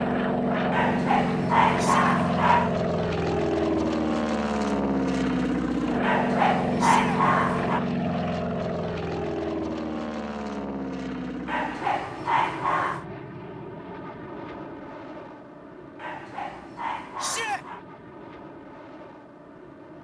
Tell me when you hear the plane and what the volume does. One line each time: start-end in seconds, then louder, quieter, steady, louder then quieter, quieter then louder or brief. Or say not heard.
0.0-19.9 quieter.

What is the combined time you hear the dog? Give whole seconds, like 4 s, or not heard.
7 s.